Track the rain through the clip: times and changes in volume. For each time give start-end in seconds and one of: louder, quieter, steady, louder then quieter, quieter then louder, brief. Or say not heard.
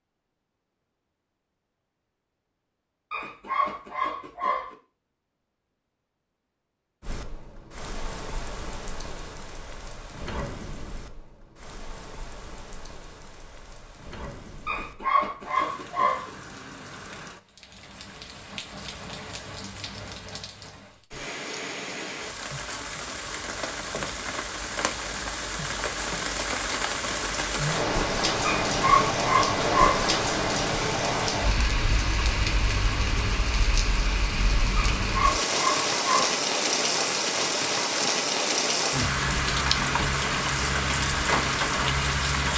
7.0-42.5 louder.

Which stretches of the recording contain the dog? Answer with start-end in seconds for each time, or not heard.
3.1-4.8, 14.7-16.3, 28.4-30.1, 34.8-36.4.